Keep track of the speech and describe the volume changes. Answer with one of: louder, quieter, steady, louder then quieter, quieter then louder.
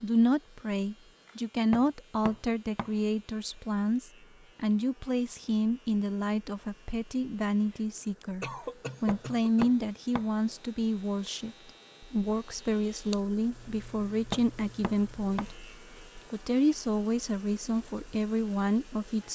steady.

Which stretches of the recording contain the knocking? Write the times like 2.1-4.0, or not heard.
1.7-2.9, 9.1-10.3, 14.3-15.5.